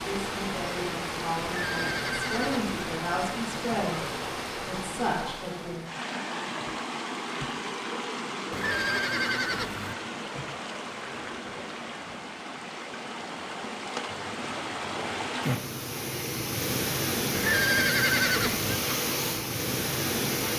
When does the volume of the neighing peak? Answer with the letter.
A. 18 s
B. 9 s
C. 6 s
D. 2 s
A.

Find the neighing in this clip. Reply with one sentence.
The neighing can be heard from 1.4 to 2.6 s, from 8.5 to 9.9 s and from 17.4 to 18.8 s.